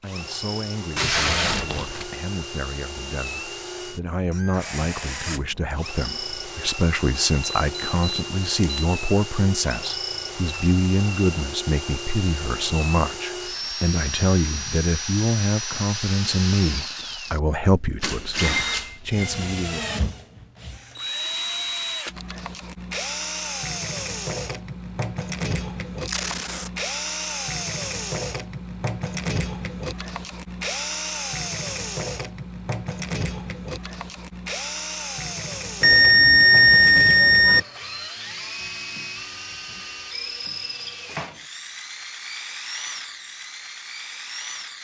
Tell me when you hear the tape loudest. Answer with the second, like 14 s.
1 s.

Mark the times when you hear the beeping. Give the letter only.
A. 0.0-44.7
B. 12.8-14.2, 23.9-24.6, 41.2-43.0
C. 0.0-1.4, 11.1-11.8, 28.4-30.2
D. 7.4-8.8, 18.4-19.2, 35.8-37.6
D.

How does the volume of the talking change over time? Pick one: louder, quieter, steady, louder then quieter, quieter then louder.
louder.